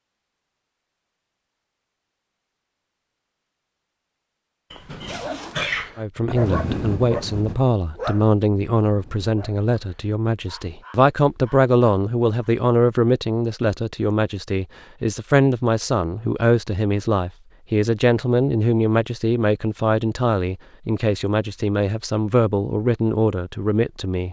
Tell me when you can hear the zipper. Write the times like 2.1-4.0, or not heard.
5.0-5.7.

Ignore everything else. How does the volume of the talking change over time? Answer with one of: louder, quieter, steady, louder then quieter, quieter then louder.
steady.